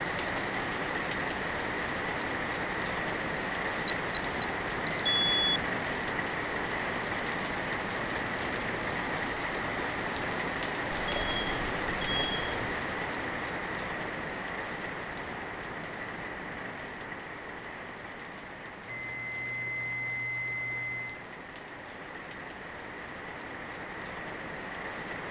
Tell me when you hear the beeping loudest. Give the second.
5 s.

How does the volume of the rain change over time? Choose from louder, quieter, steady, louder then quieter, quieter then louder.
quieter.